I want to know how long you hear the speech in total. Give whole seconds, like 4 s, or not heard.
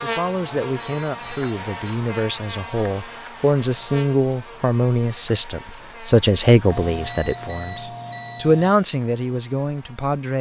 10 s.